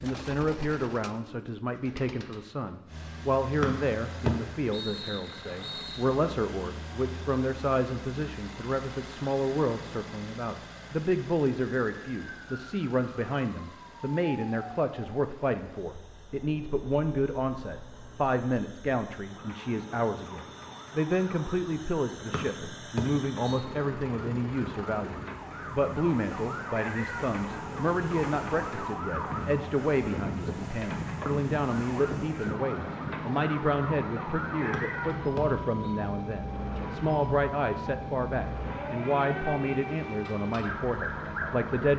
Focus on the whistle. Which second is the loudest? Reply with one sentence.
The loudest moment of the whistle is at 4 seconds.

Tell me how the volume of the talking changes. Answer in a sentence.
The volume of the talking stays about the same.